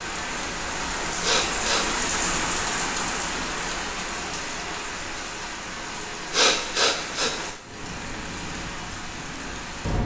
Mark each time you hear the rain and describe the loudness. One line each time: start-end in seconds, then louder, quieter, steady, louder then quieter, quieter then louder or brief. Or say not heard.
0.0-10.0 quieter.